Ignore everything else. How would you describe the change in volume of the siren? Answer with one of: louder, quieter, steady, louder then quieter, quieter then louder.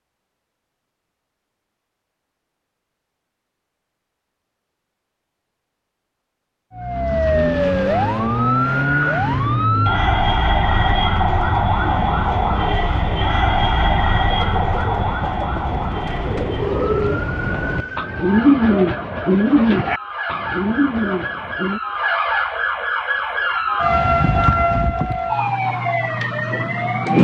quieter then louder.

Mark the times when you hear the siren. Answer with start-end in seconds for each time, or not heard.
6.8-27.1.